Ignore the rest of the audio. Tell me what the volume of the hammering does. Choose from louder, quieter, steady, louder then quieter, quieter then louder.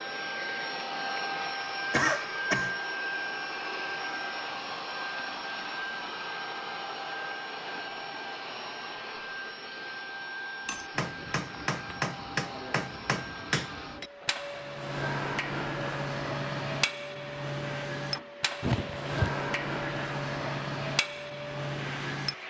steady.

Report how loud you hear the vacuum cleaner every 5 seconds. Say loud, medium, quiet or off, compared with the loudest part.
loud, loud, medium, medium, medium.